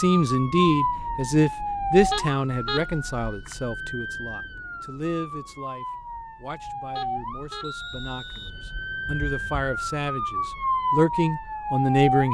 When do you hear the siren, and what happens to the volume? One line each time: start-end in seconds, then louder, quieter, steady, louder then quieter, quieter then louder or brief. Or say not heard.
0.0-12.2 quieter then louder.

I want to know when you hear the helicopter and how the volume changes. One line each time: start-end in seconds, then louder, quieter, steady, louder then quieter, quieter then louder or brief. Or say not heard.
not heard.